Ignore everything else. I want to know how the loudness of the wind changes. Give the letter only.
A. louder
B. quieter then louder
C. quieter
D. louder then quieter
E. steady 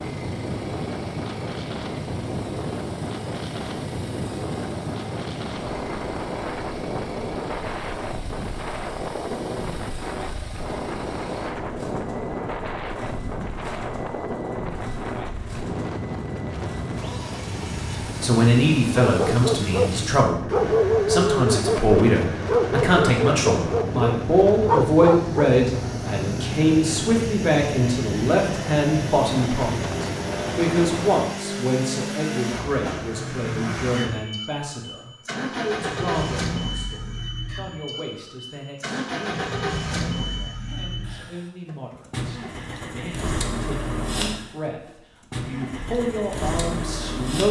E.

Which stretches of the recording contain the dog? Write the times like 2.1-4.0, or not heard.
19.0-25.4.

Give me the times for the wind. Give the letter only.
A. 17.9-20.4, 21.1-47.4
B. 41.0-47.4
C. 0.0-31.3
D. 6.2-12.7
C.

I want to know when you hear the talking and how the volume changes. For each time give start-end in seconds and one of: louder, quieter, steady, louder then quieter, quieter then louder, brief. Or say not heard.
17.9-20.4 brief
21.1-47.4 quieter then louder.